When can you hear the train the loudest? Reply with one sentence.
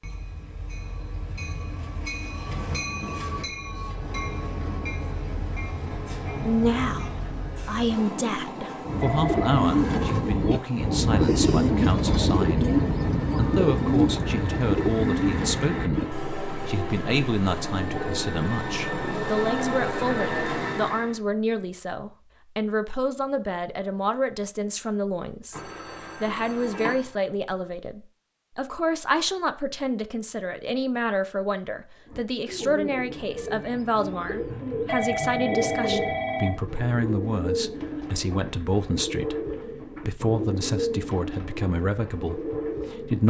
The loudest moment of the train is at 20 seconds.